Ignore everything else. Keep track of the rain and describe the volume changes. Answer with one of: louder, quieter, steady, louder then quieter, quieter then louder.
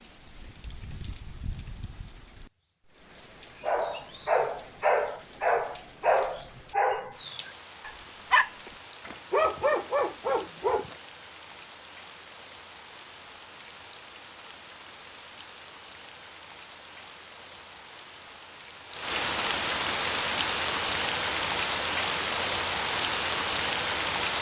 louder.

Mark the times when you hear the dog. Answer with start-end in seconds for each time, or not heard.
3.6-10.9.